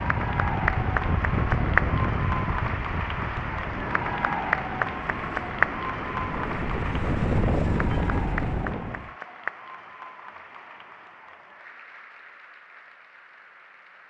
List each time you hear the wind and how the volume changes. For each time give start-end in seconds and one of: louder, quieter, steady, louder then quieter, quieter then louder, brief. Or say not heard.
0.0-9.2 quieter then louder.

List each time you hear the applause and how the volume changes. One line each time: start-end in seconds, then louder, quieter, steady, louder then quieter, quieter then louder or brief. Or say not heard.
0.0-14.0 quieter.